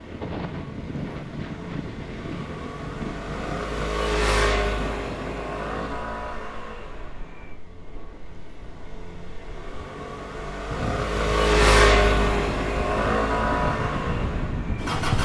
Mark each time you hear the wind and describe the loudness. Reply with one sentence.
You can hear the wind from 0.0 to 15.2 s, getting quieter then louder.